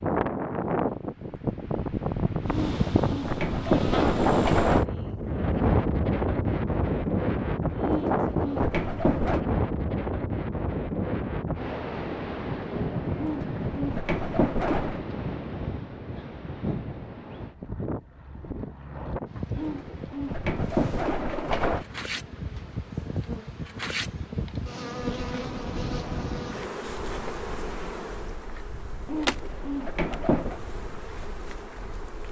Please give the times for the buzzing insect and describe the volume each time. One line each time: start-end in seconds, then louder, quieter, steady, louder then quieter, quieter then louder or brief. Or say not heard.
2.5-4.8 brief
20.6-32.2 louder then quieter.